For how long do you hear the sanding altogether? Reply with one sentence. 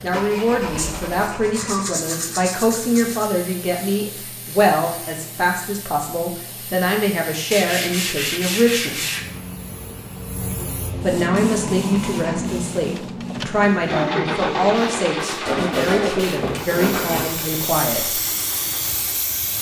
The sanding can be heard for 6 seconds in total.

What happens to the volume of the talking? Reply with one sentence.
The volume of the talking stays about the same.